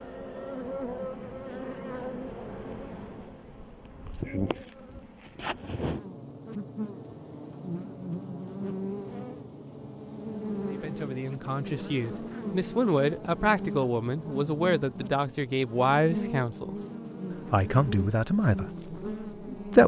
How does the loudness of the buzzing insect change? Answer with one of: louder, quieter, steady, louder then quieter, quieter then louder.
steady.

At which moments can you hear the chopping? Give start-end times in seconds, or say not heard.
not heard.